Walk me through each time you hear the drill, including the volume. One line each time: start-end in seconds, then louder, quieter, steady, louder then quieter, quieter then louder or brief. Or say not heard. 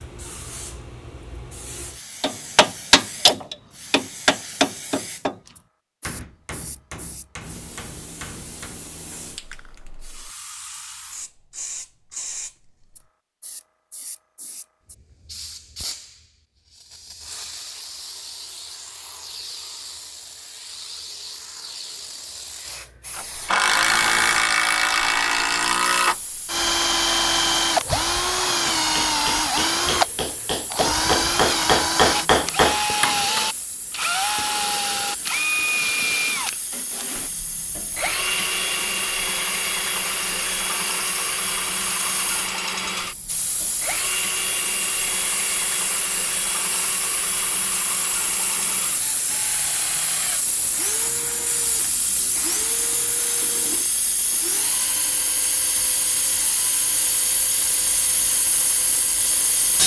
23.1-59.8 quieter.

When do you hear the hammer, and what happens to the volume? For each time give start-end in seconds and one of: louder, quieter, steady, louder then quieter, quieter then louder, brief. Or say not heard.
2.2-8.8 quieter
28.6-33.5 louder.